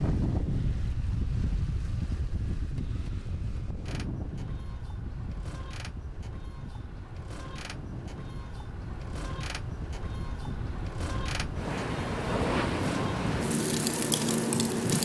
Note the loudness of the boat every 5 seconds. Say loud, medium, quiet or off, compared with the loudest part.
medium, medium, loud.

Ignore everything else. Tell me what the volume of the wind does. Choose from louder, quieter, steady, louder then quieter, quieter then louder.
quieter then louder.